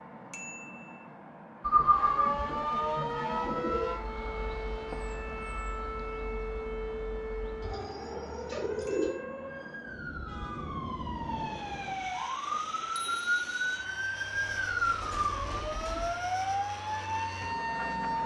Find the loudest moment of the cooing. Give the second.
2 s.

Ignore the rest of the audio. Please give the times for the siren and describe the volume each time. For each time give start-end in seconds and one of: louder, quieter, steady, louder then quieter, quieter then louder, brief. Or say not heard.
1.8-18.2 quieter then louder.